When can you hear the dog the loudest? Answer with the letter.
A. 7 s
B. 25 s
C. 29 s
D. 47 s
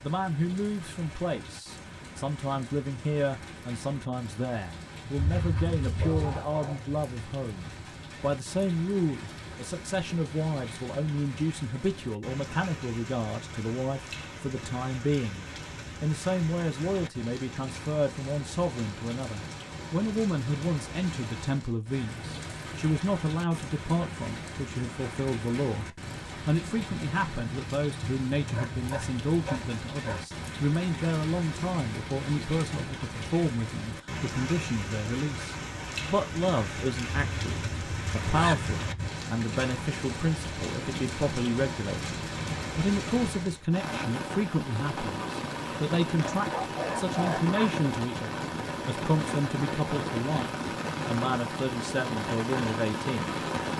D.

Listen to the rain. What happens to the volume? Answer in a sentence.
The loudness of the rain goes up.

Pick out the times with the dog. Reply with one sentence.
You can hear the dog from 6.0 to 6.8 s, from 28.4 to 30.2 s and from 46.4 to 47.9 s.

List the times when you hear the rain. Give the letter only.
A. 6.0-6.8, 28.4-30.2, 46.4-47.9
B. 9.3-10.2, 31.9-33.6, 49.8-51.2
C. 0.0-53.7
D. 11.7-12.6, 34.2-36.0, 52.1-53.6
C.